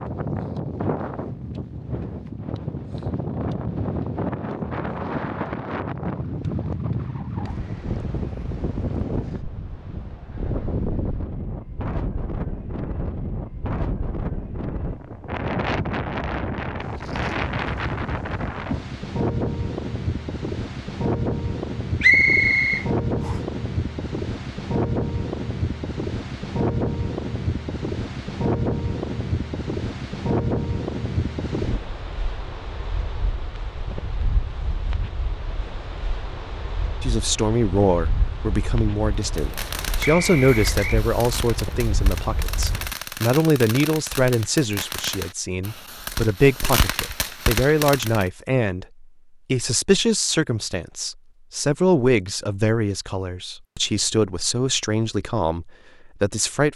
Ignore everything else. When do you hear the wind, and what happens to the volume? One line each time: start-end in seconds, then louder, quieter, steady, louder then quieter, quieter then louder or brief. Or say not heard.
0.0-43.0 quieter.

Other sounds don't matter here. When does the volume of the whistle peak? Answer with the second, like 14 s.
22 s.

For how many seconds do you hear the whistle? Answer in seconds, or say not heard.
2 s.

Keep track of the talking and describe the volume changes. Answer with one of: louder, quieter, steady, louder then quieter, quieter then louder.
steady.